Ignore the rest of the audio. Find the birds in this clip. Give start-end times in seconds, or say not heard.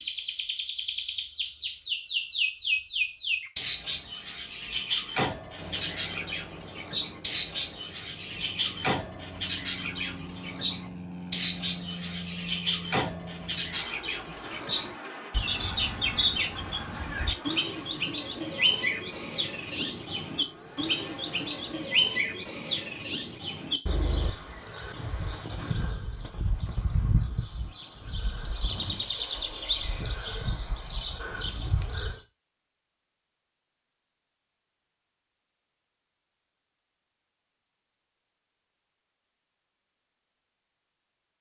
0.0-32.2.